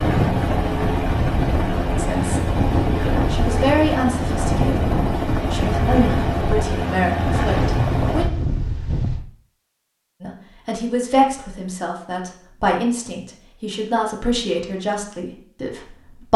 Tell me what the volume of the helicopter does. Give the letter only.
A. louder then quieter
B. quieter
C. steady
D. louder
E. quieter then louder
C.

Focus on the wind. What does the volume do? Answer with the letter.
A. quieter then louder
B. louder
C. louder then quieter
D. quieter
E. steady
E.